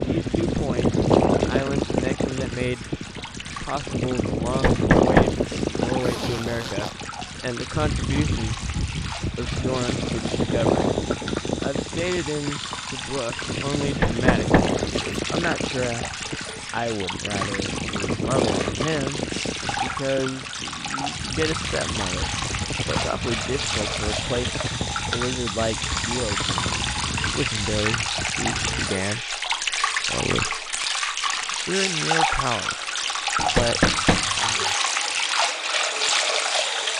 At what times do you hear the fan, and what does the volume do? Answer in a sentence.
You can hear the fan from 0.0 to 28.9 s, getting quieter.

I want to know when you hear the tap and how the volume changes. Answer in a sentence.
The tap can be heard from 0.0 to 36.9 s, getting louder.